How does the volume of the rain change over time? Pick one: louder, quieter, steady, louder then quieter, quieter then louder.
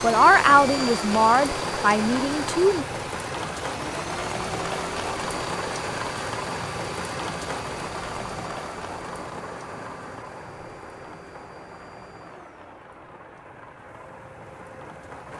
quieter.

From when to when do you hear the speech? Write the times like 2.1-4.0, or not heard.
0.0-2.9.